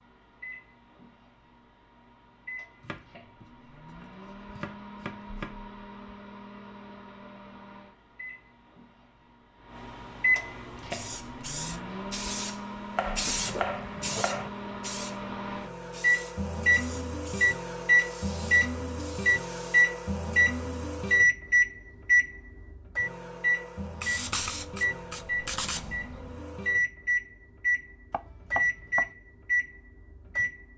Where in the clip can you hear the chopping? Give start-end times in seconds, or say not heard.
2.8-5.5, 12.9-14.5, 28.1-29.1.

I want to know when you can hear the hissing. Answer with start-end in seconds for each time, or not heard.
10.9-19.9, 23.8-26.4.